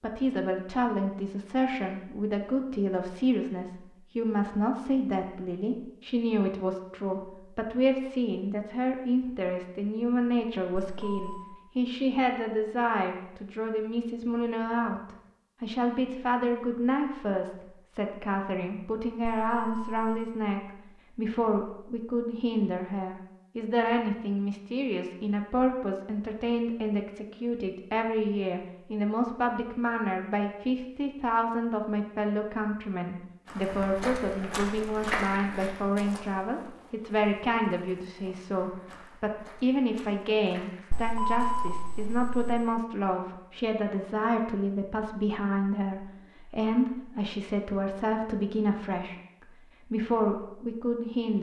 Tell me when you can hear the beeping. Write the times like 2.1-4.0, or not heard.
10.8-11.6, 19.2-20.3, 40.9-42.8.